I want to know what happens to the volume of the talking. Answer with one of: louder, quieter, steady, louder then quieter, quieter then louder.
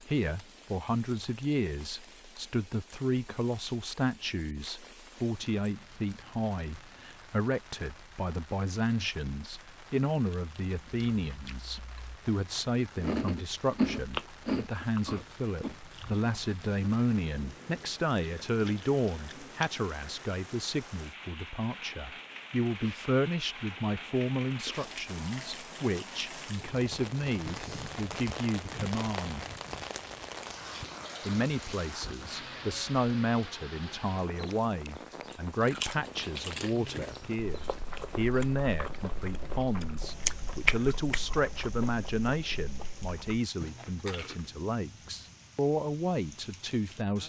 steady.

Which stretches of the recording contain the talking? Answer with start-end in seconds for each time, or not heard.
0.1-29.4, 31.2-47.2.